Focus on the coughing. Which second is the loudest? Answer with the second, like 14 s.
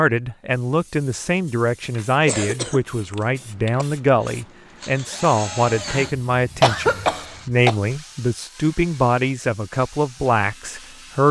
7 s.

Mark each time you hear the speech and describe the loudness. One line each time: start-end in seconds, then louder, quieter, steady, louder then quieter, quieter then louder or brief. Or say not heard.
0.0-11.2 steady.